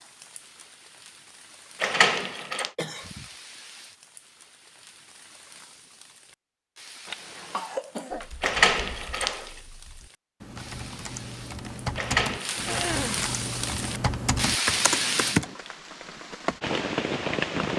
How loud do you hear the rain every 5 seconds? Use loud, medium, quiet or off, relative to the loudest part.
quiet, quiet, loud, loud.